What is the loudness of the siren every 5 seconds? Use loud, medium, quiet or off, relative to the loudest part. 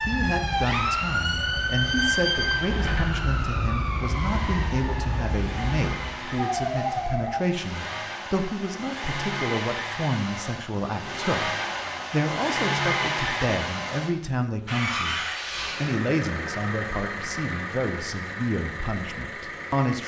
loud, loud, off, off.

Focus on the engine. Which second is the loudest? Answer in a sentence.
The loudest moment of the engine is at 13 seconds.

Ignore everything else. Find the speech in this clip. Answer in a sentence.
The speech can be heard from 0.1 to 15.2 s and from 15.8 to 20.0 s.